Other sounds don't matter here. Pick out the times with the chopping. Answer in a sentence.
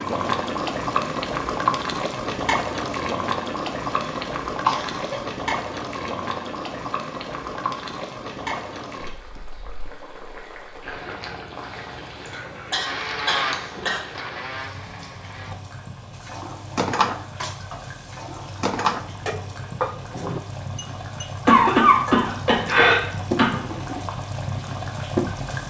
The chopping can't be heard in this clip.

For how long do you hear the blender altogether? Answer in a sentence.
You can hear the blender for 3 seconds altogether.